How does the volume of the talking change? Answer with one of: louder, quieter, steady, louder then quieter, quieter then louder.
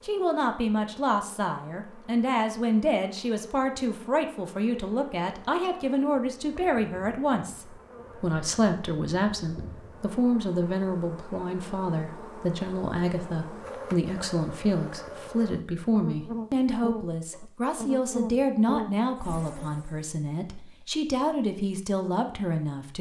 steady.